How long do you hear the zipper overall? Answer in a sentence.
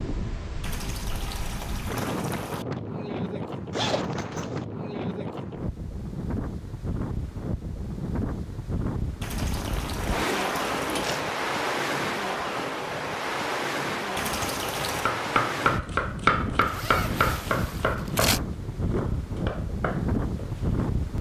You can hear the zipper for 4 seconds altogether.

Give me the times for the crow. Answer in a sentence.
The crow can't be heard in this clip.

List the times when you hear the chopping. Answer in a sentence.
You can hear the chopping from 14.9 to 20.9 s.